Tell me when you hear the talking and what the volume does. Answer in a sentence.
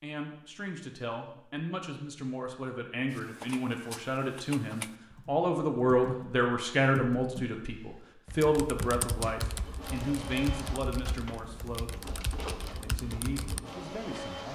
You can hear the talking from 0.0 to 12.0 s, getting louder then quieter; and briefly from 12.8 to 14.5 s.